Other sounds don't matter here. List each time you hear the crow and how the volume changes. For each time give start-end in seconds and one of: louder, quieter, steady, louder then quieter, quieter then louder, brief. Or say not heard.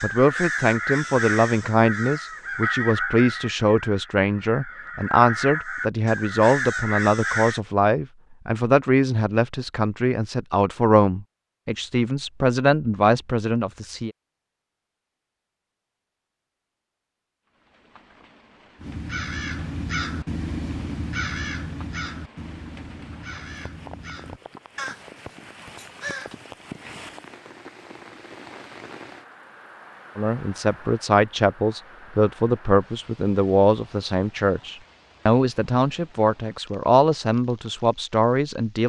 0.0-7.6 quieter then louder
18.8-26.9 quieter.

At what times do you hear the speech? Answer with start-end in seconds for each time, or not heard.
0.0-14.1, 30.1-38.8.